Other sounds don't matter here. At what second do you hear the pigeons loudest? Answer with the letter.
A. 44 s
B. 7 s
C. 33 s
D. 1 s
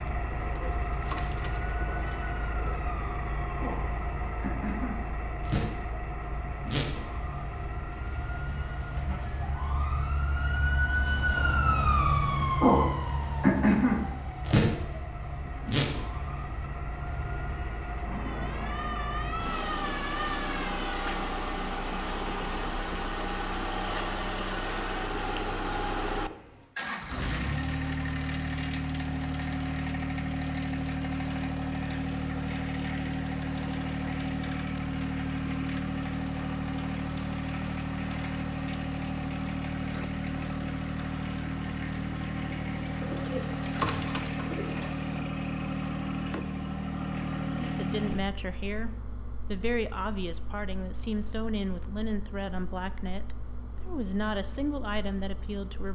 A.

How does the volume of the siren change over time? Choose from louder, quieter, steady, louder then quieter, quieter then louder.
louder then quieter.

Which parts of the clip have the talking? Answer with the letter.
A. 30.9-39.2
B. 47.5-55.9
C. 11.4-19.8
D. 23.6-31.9
B.